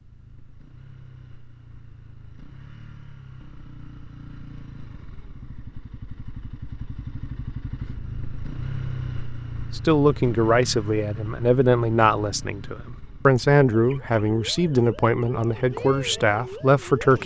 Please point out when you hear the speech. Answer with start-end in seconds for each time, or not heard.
9.7-17.2.